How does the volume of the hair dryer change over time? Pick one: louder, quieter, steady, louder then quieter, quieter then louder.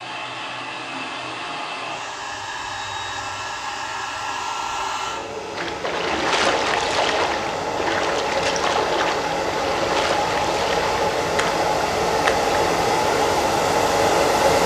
louder.